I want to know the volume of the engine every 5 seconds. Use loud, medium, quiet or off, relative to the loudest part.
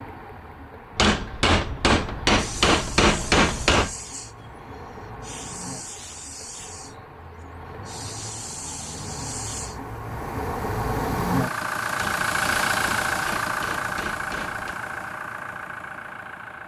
quiet, quiet, loud, medium.